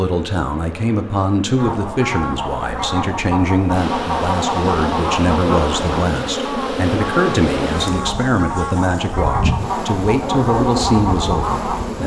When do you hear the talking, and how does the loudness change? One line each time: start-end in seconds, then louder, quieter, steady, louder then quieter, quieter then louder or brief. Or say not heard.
0.0-12.0 steady.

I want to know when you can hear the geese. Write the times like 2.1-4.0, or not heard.
1.6-11.8.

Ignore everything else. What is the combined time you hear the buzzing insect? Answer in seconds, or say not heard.
12 s.